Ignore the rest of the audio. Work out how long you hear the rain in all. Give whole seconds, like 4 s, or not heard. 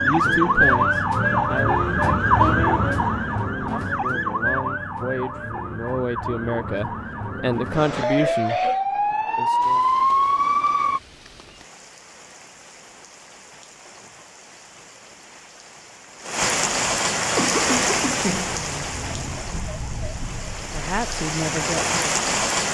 13 s.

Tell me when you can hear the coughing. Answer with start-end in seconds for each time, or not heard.
7.9-8.8, 17.4-18.6.